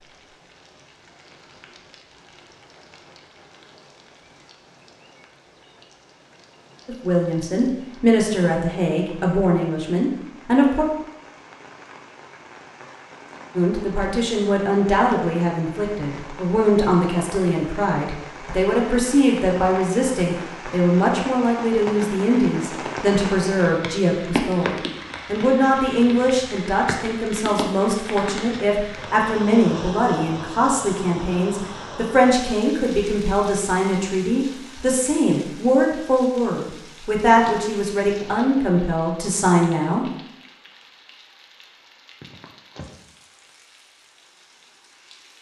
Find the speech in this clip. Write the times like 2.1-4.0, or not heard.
6.8-10.8, 13.6-40.0.